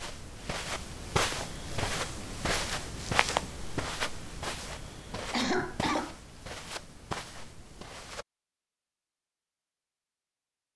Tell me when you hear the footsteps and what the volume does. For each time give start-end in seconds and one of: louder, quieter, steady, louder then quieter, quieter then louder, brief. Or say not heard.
0.0-8.2 quieter.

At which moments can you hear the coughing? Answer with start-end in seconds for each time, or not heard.
5.3-6.2.